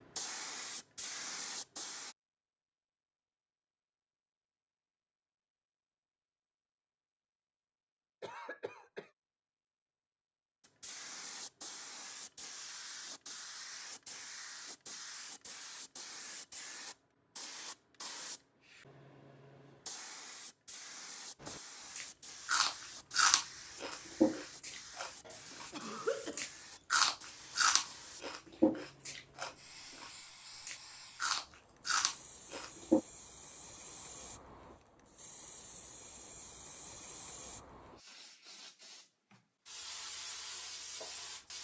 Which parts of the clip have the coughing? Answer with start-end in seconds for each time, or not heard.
8.2-9.1, 25.2-26.4.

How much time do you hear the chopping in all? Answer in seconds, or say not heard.
not heard.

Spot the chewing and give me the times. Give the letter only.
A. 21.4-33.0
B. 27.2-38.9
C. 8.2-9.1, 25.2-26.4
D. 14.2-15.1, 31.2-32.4
A.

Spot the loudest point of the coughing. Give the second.
26 s.